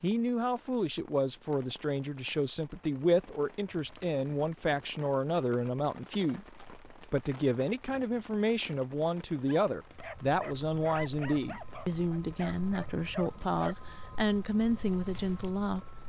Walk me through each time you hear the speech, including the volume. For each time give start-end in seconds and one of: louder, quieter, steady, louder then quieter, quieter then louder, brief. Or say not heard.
0.0-15.8 steady.